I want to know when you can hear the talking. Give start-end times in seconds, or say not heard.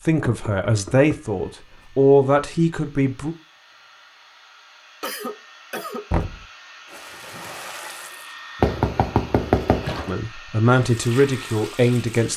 0.1-3.4, 10.1-12.3.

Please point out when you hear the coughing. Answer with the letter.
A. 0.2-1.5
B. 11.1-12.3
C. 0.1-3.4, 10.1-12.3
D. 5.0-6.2
D.